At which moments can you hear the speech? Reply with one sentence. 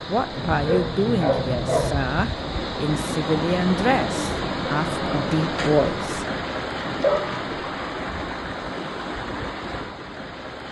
The speech can be heard from 0.1 to 6.2 s.